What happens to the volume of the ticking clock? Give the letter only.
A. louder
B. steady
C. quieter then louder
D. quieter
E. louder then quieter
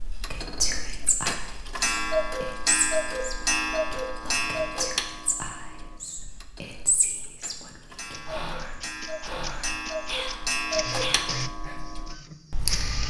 C.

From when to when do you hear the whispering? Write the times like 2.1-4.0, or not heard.
0.3-11.8.